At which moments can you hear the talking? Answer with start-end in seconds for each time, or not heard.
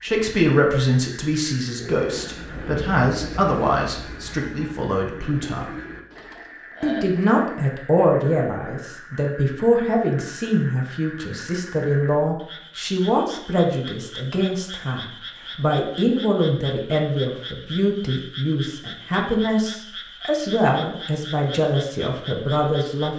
0.0-5.8, 6.8-23.1.